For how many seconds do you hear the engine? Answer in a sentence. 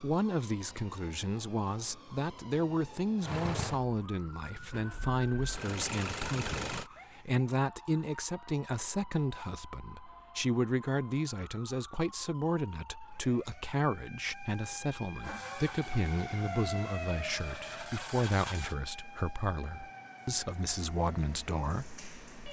You can hear the engine for 7 seconds altogether.